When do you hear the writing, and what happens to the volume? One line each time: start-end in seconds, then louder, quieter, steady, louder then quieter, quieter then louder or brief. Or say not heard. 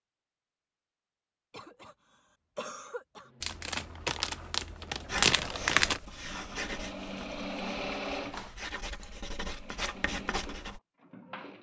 5.0-10.8 quieter then louder.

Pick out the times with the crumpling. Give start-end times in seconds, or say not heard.
3.4-6.0.